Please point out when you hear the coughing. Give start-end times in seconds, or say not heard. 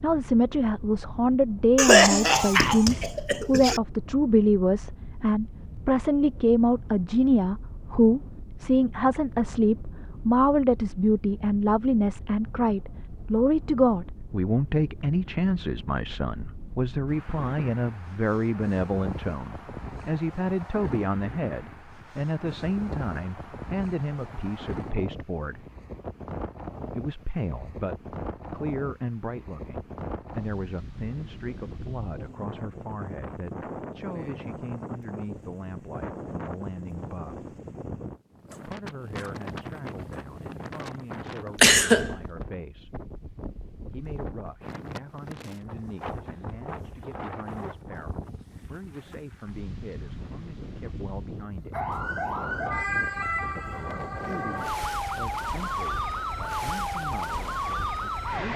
1.8-3.8, 41.6-42.1.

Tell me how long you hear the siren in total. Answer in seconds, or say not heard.
7 s.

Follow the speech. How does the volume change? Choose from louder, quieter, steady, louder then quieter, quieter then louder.
quieter.